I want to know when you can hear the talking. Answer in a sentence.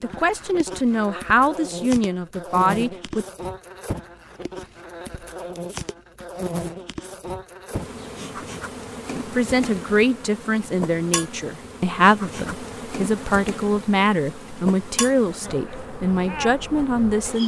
You can hear the talking from 0.0 to 3.2 s and from 9.3 to 17.4 s.